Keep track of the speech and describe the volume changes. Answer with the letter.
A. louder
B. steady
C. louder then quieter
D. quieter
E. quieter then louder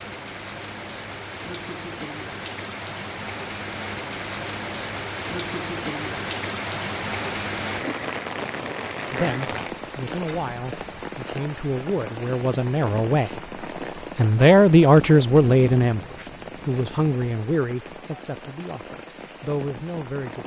C.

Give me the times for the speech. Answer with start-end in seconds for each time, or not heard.
9.1-13.4, 14.2-20.4.